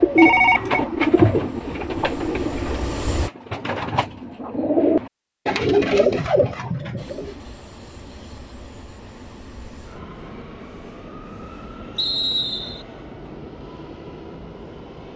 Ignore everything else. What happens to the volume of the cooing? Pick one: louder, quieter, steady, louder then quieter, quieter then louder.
quieter then louder.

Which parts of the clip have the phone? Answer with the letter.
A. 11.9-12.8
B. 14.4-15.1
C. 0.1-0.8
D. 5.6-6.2
C.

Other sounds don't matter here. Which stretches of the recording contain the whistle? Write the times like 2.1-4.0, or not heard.
11.9-12.8.